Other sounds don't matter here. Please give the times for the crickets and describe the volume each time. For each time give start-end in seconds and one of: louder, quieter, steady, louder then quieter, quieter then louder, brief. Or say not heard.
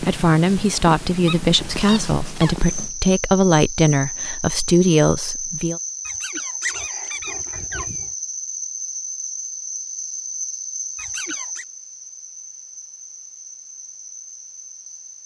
2.6-15.2 quieter.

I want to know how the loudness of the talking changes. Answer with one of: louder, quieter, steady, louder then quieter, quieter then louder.
steady.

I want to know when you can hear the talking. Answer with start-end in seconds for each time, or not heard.
0.0-5.8.